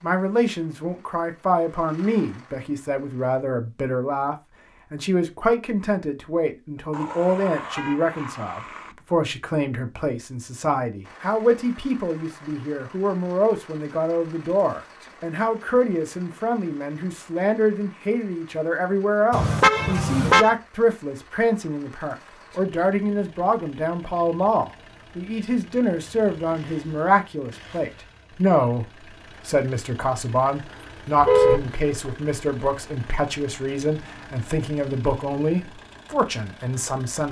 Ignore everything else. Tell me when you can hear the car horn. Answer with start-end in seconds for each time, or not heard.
6.9-8.9, 19.3-20.6, 31.2-31.6.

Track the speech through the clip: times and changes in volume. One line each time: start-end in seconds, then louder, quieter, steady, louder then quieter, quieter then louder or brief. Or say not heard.
0.0-37.2 steady.